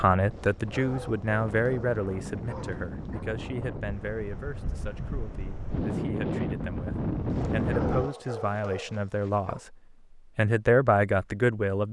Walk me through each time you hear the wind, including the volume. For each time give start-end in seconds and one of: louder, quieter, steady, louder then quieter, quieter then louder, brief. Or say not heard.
0.1-8.1 louder.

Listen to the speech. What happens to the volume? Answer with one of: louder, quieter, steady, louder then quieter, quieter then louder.
quieter then louder.